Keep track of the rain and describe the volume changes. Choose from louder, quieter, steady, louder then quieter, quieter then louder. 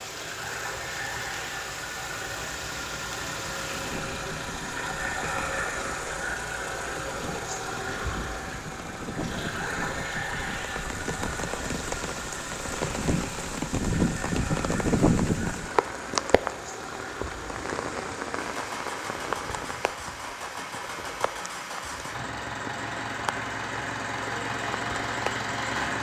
louder then quieter.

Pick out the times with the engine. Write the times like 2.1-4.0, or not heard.
0.0-25.9.